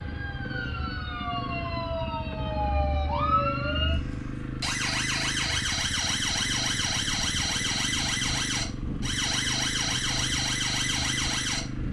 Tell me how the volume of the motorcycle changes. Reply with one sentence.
The volume of the motorcycle stays about the same.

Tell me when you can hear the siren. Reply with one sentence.
You can hear the siren from 0.0 to 11.8 s.